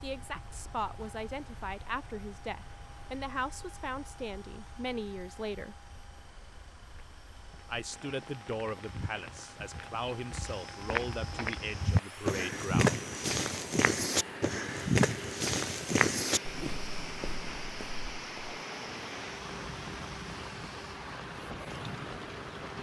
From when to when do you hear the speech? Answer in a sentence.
You can hear the speech from 0.0 to 5.8 s and from 7.7 to 13.0 s.